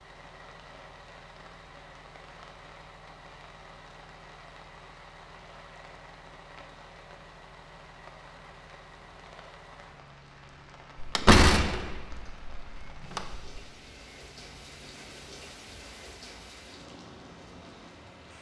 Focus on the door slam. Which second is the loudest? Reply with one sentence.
The loudest moment of the door slam is at 11 seconds.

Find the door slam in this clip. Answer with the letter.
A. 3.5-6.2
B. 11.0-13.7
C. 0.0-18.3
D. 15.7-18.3
B.